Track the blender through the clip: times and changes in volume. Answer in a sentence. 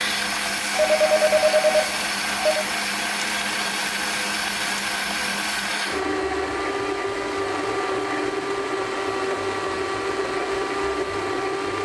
The blender can be heard from 0.0 to 11.7 s, at a steady volume.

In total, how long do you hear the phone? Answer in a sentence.
The phone can be heard for 2 seconds in total.